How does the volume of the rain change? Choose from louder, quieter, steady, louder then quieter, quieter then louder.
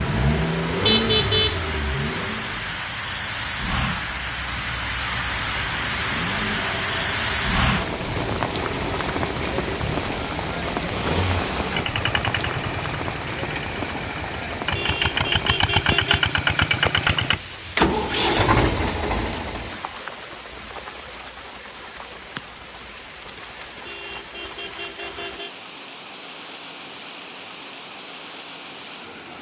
quieter.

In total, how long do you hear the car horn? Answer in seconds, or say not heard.
4 s.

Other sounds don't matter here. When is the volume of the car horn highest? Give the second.
1 s.